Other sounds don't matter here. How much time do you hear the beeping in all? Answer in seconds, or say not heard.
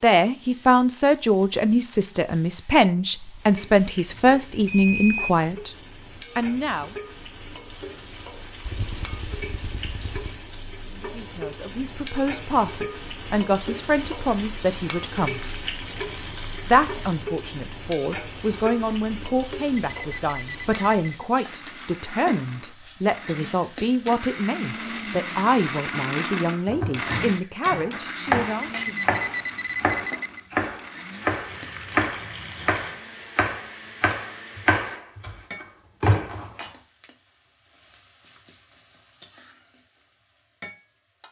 4 s.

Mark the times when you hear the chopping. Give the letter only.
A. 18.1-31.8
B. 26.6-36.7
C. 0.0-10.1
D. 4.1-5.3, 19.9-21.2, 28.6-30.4
B.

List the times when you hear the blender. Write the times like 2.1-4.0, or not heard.
21.4-35.0.